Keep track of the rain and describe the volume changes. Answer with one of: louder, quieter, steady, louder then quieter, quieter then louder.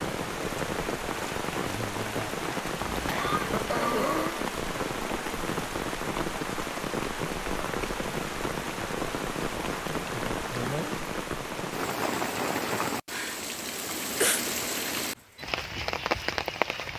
steady.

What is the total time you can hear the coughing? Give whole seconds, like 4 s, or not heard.
3 s.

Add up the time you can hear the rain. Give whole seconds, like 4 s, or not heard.
17 s.